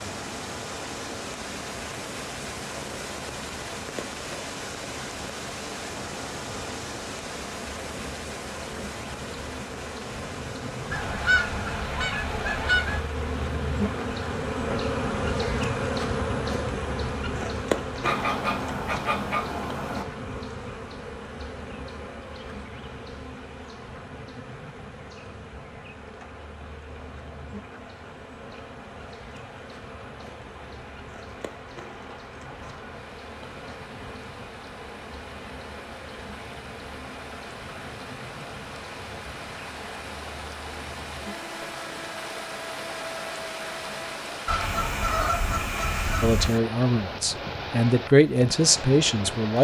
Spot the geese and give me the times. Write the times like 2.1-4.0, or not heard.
10.9-13.1, 18.0-20.1, 44.5-46.5.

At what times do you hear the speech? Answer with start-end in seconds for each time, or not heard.
46.2-49.6.